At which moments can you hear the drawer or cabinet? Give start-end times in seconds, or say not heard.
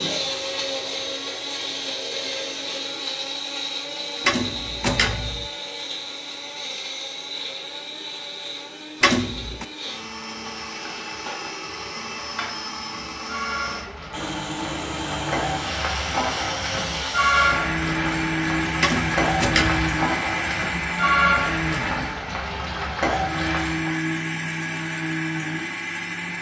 4.2-5.5, 9.0-9.7, 18.8-19.9.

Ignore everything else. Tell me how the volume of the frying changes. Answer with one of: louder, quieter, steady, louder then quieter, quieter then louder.
louder.